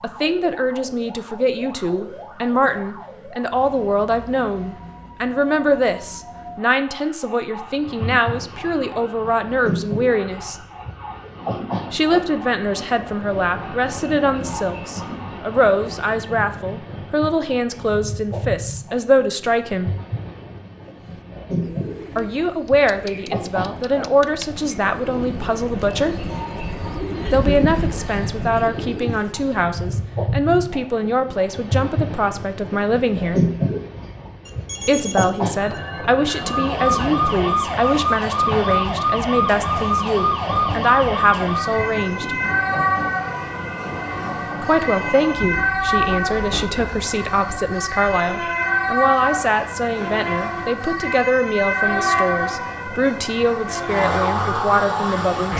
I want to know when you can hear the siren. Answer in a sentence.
The siren can be heard from 0.0 to 16.1 s and from 36.4 to 55.5 s.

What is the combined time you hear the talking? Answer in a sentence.
The talking can be heard for 47 seconds in total.